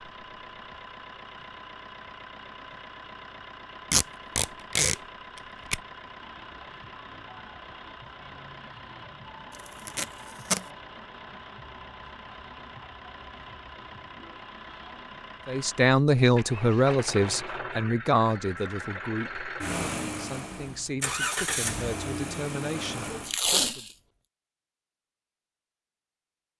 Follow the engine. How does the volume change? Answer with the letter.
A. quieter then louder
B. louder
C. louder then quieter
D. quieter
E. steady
B.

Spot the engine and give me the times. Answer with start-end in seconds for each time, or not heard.
0.0-23.4.